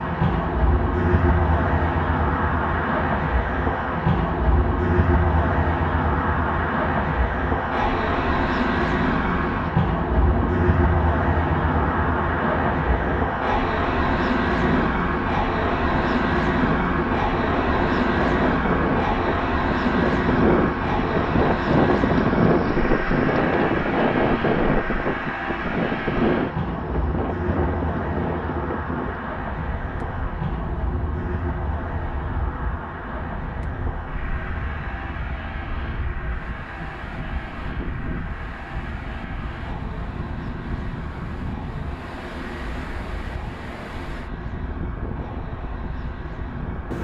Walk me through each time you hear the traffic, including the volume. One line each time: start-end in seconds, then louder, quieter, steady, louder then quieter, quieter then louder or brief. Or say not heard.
0.0-46.9 quieter.